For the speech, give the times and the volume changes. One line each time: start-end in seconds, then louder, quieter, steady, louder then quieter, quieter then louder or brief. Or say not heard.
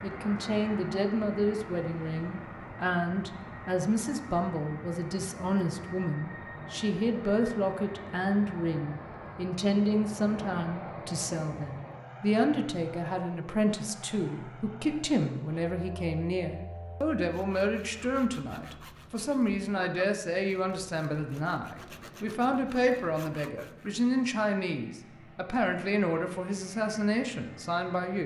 0.0-28.2 steady.